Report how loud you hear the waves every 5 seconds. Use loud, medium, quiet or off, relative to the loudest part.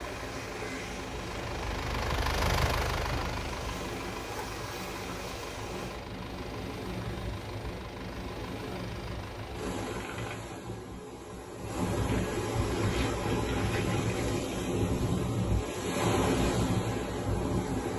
medium, medium, loud, loud.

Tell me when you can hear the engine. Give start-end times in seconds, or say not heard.
0.0-10.4.